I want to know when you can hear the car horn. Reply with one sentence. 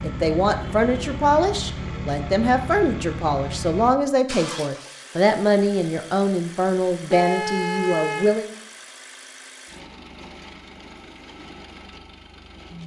The car horn can be heard from 0.7 to 1.1 s and from 7.1 to 8.4 s.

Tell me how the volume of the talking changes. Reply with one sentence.
The volume of the talking stays about the same.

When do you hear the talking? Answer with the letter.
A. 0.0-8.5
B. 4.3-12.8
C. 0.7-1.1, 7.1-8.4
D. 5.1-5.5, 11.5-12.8
A.